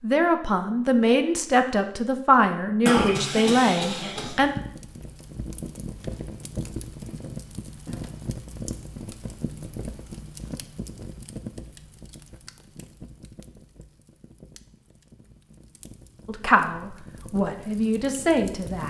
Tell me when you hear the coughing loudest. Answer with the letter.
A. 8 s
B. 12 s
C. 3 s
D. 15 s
C.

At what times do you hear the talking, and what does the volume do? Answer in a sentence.
The talking can be heard from 0.0 to 4.5 s, at a steady volume; and briefly from 16.2 to 18.8 s.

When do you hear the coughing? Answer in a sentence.
You can hear the coughing from 2.9 to 4.4 s.